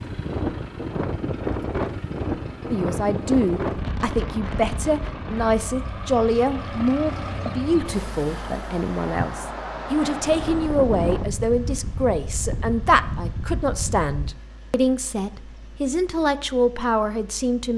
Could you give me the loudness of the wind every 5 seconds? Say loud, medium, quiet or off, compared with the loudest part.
loud, medium, loud, off.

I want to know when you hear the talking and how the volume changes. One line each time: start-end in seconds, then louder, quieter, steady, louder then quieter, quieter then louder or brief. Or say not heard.
2.7-17.7 steady.